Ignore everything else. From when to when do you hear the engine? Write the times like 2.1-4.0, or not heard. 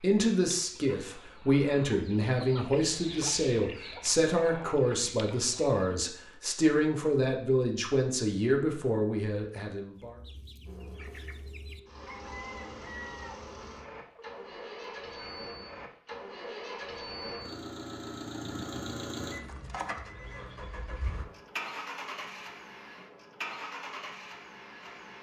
10.7-25.1.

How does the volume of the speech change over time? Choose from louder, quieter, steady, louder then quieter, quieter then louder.
steady.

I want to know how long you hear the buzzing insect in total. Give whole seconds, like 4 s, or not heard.
not heard.